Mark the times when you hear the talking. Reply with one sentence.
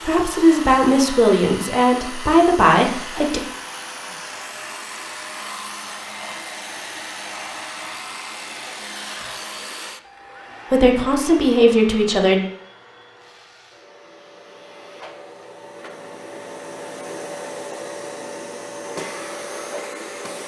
The talking can be heard from 0.0 to 3.4 s and from 10.7 to 12.4 s.